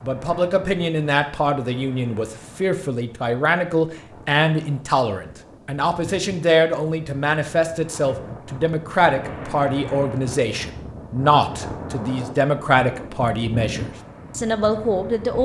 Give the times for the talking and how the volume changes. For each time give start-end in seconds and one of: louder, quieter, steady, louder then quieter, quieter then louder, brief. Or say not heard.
0.0-15.4 steady.